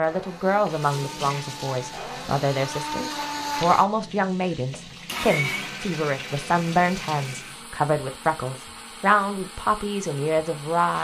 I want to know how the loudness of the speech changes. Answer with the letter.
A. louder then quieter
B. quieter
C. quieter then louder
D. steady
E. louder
D.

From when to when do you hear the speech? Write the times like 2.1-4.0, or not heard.
0.0-10.9.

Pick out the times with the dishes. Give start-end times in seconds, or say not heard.
not heard.